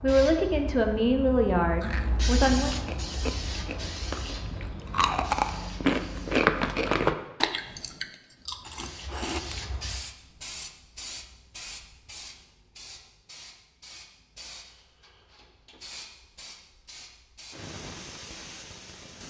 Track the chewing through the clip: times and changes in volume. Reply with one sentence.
The chewing can be heard from 1.8 to 9.6 s, getting louder then quieter.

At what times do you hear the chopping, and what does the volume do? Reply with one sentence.
The chopping can't be heard in this clip.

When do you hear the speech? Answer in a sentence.
The speech can be heard from 0.0 to 2.8 s.